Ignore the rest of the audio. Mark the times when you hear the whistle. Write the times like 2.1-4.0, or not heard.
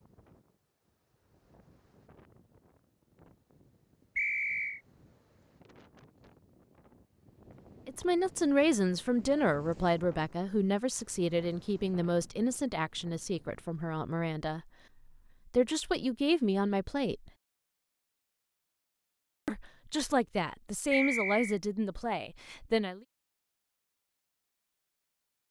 4.2-4.8, 20.9-21.6.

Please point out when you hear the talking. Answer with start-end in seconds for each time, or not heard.
7.8-14.7, 15.5-17.3, 19.4-23.0.